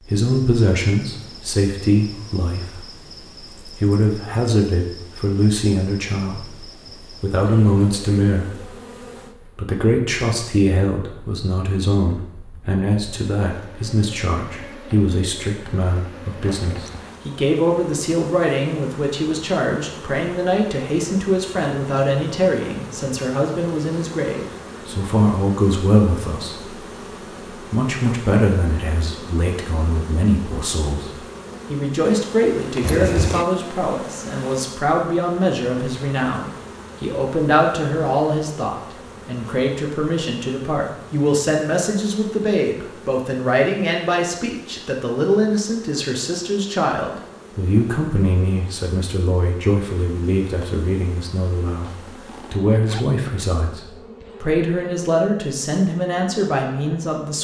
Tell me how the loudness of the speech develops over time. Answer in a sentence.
The loudness of the speech stays about the same.